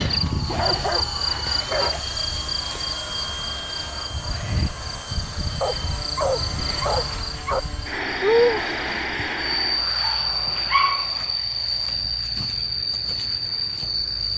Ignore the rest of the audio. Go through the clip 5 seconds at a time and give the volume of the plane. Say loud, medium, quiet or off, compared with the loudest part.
loud, loud, medium.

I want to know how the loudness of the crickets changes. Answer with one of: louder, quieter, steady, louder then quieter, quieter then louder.
quieter then louder.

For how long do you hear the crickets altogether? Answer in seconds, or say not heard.
14 s.